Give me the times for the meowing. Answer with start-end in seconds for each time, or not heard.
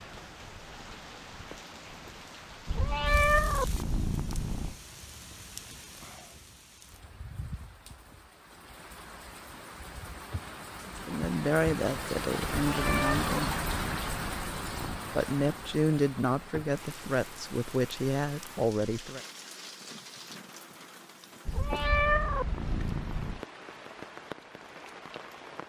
2.6-4.8, 12.6-15.1, 21.4-23.4.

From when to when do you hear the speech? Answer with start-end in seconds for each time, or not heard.
11.1-13.6, 15.1-19.2.